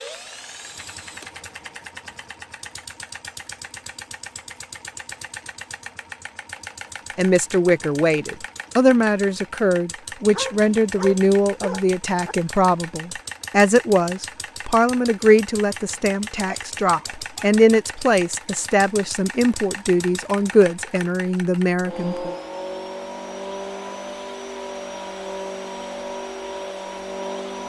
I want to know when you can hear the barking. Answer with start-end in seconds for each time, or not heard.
10.3-12.3, 16.4-17.4.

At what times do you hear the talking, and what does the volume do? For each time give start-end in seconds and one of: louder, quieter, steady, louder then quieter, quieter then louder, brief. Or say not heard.
7.2-22.4 steady.